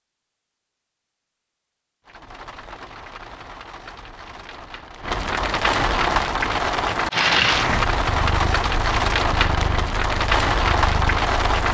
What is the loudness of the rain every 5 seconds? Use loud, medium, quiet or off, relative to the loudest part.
quiet, loud, loud.